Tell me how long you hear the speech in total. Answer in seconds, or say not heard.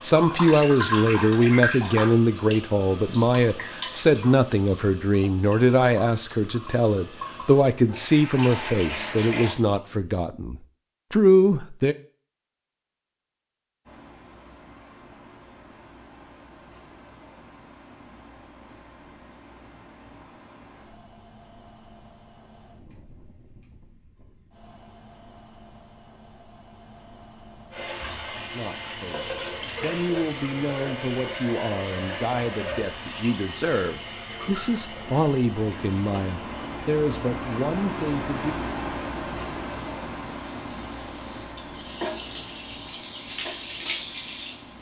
22 s.